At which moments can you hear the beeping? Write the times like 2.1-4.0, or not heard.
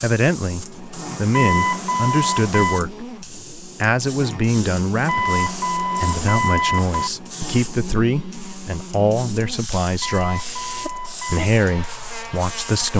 1.3-2.9, 5.0-7.1, 10.0-11.5.